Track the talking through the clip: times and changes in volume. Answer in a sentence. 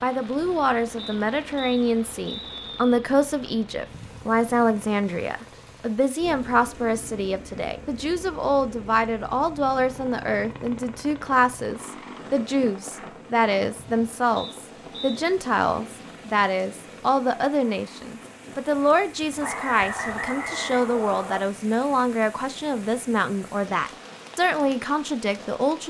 The talking can be heard from 0.0 to 25.8 s, at a steady volume.